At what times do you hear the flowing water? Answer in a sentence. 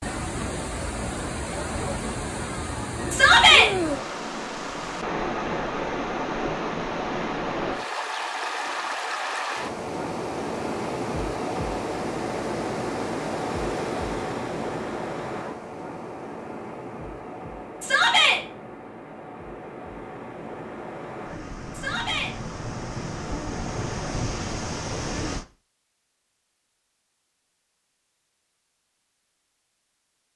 The flowing water can be heard from 0.0 to 25.4 s.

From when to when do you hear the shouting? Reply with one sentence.
You can hear the shouting from 3.1 to 3.7 s, from 17.8 to 18.4 s and from 21.7 to 22.4 s.